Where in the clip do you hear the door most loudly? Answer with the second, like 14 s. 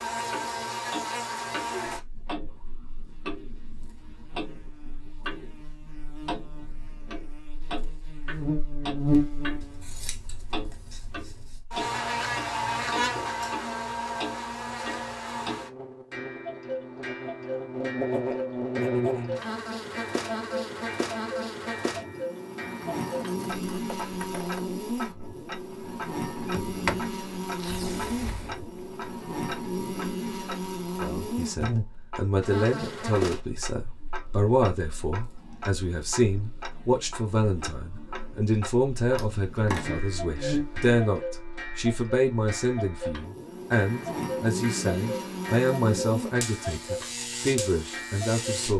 27 s.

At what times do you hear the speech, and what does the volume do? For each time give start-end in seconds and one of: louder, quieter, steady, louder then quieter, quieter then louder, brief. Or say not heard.
30.9-48.7 steady.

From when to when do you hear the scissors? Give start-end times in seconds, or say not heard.
9.6-11.6, 23.0-24.6, 39.1-39.9.